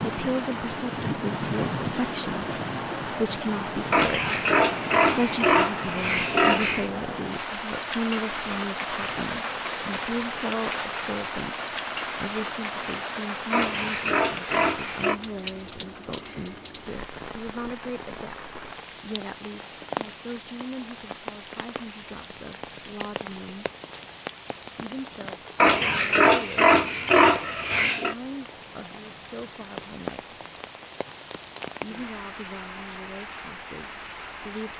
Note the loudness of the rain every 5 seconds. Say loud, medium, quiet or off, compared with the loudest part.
loud, loud, loud, medium, medium, medium, medium.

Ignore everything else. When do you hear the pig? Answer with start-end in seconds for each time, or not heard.
3.9-6.9, 13.5-15.2, 25.6-28.1.